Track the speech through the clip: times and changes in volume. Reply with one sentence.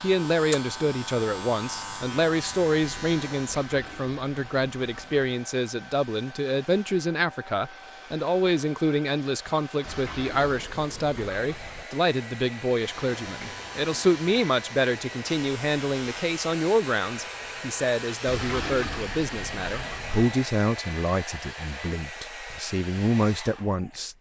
The speech can be heard from 0.0 to 24.1 s, at a steady volume.